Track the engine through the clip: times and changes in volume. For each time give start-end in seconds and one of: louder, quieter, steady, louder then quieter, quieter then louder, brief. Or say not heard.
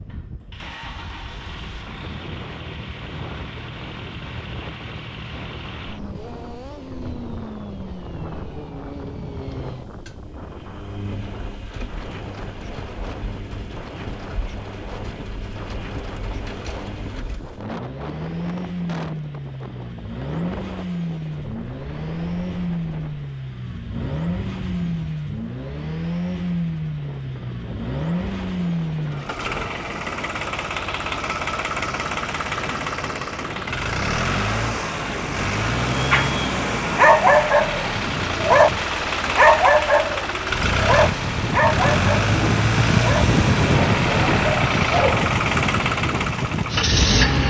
0.0-47.4 louder.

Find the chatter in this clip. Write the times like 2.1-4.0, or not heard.
not heard.